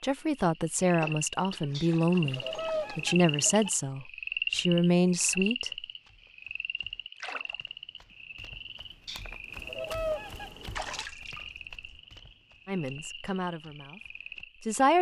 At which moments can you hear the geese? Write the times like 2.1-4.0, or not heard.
1.8-3.7, 9.1-11.1.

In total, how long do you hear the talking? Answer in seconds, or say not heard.
8 s.